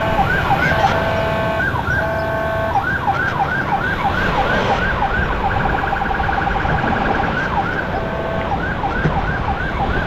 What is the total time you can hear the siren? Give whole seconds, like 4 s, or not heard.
10 s.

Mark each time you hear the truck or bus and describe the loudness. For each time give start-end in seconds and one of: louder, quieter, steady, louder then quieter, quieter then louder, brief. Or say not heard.
not heard.